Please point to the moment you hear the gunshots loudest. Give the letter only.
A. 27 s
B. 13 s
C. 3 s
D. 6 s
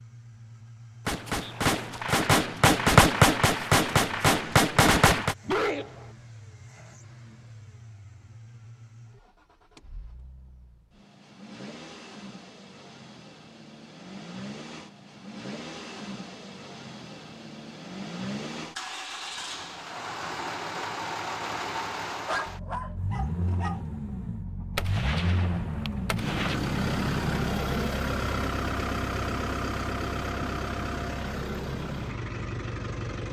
C.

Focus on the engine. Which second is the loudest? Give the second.
27 s.